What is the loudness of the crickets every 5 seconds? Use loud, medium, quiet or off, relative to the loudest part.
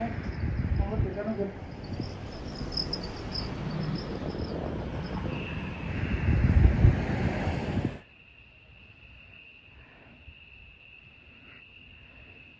loud, medium, quiet.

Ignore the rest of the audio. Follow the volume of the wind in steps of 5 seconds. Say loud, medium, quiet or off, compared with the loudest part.
medium, loud, off.